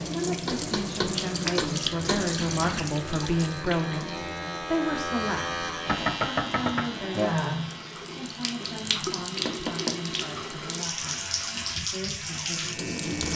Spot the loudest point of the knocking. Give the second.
6 s.